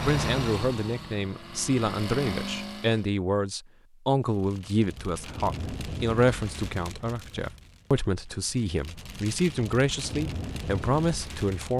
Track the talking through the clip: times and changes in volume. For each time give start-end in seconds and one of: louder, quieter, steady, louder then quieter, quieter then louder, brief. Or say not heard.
0.0-11.7 steady.